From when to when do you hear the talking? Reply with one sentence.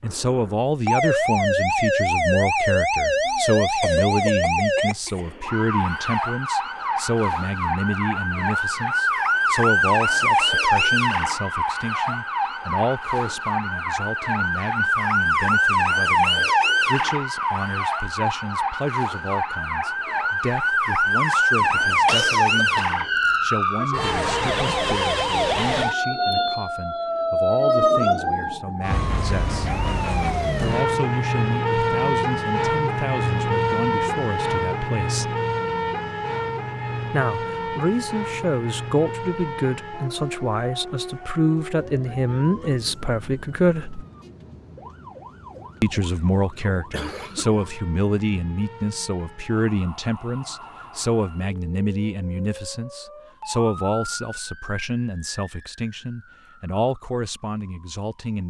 The talking can be heard from 0.0 to 29.8 s, from 30.6 to 35.4 s, from 37.1 to 44.0 s and from 45.8 to 58.4 s.